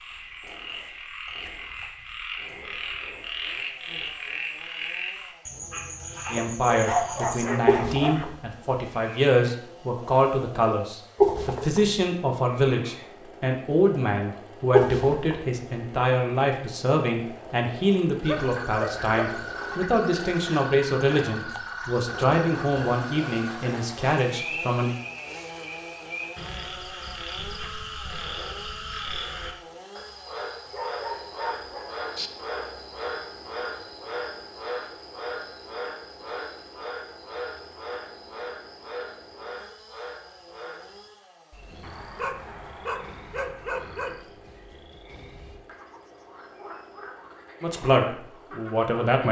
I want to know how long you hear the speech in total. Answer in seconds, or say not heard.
20 s.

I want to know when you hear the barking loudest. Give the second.
7 s.